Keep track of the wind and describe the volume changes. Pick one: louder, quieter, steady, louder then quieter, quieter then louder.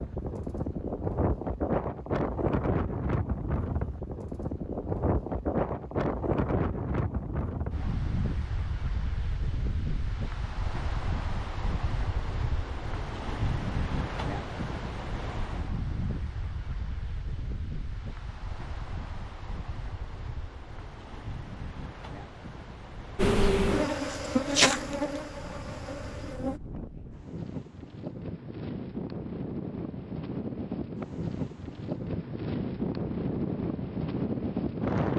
quieter then louder.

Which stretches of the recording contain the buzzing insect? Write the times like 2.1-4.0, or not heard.
23.1-26.6.